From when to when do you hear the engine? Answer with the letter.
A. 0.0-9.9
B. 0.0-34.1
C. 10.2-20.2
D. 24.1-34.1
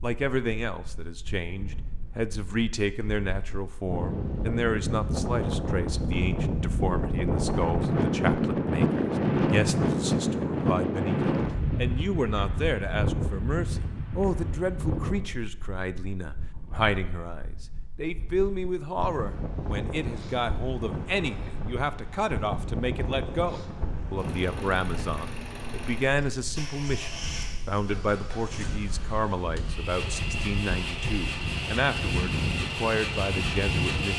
D.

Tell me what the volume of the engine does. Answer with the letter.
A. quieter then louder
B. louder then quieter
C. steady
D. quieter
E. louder
E.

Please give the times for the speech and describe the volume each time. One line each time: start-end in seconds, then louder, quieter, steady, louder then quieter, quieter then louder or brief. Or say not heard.
0.0-34.1 steady.